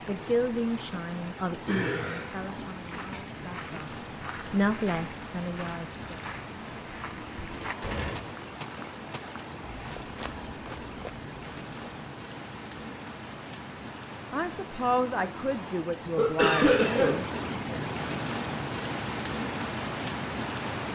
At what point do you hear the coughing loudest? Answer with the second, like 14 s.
17 s.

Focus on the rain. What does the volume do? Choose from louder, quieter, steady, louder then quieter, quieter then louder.
louder.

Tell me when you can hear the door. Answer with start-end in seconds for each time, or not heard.
7.5-8.4.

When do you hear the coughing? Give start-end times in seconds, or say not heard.
1.6-3.2, 16.1-17.1.